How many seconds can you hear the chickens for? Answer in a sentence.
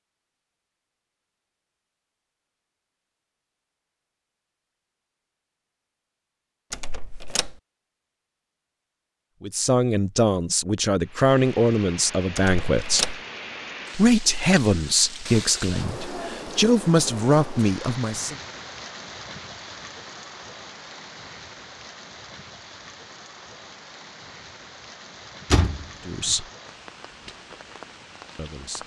You can't hear the chickens here.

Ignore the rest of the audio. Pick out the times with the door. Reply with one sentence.
You can hear the door from 6.7 to 7.5 s, from 12.3 to 13.2 s and from 25.5 to 26.4 s.